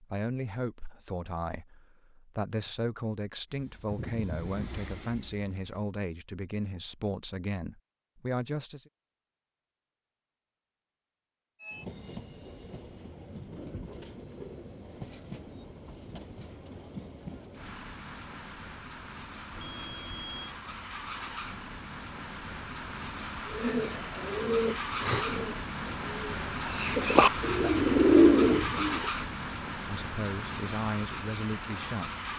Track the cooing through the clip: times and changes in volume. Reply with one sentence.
The cooing can be heard from 23.6 to 29.1 s, getting quieter then louder.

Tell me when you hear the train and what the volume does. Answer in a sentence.
You can hear the train briefly from 3.5 to 5.9 s; and from 11.6 to 32.3 s, getting louder.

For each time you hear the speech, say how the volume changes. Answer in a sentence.
The speech can be heard from 0.0 to 8.8 s, at a steady volume; and briefly from 29.9 to 32.1 s.